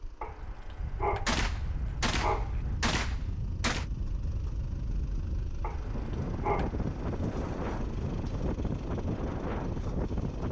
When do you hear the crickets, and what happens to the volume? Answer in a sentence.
The crickets can't be heard in this clip.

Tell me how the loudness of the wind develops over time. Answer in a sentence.
The volume of the wind goes up.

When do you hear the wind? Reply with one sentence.
You can hear the wind from 0.0 to 10.4 s.